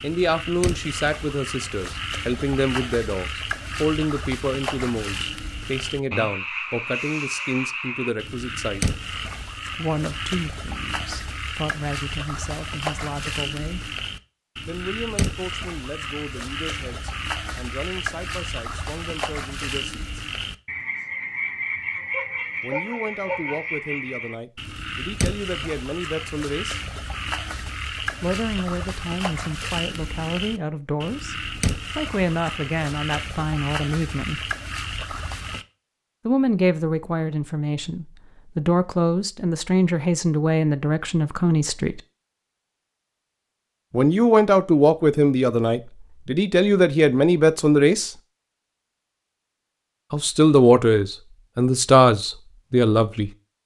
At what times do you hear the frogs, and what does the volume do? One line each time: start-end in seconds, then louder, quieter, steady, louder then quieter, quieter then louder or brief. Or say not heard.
0.0-35.6 steady.